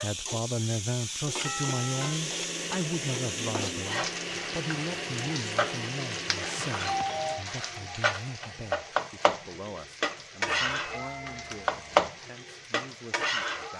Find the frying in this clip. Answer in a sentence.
The frying can be heard from 0.0 to 13.7 s.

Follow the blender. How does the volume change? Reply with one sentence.
The volume of the blender stays about the same.